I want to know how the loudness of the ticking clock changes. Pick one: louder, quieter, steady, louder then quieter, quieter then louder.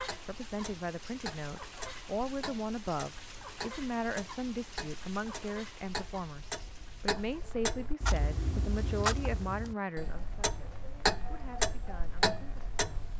louder.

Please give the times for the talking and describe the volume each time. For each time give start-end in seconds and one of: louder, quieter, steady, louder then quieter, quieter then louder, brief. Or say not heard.
0.2-13.1 quieter.